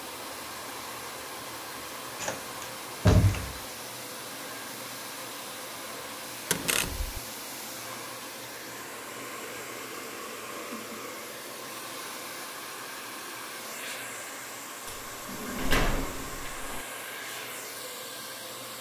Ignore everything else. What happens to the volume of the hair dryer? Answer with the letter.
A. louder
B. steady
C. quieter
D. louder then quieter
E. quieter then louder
B.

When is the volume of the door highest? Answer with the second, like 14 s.
3 s.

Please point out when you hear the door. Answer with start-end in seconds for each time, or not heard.
2.2-3.6, 6.5-7.2, 14.8-16.9.